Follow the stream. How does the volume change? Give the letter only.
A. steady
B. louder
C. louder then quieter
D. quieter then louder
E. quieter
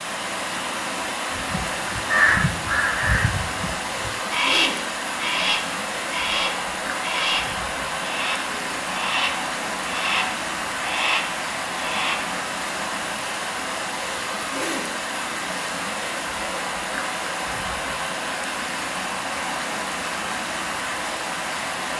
A.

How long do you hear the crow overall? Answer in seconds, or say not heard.
11 s.